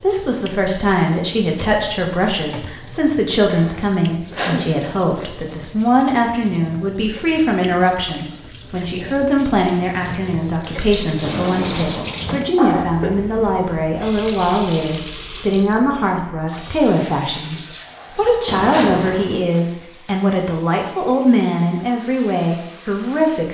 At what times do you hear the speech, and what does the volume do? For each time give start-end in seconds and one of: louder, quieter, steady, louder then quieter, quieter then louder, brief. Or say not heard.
0.0-23.4 steady.